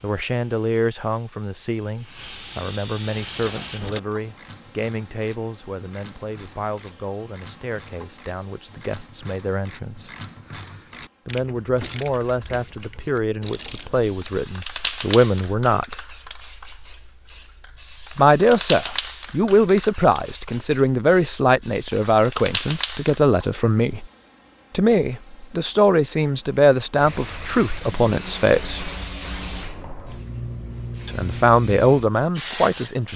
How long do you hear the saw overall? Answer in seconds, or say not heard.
not heard.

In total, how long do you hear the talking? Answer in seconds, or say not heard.
27 s.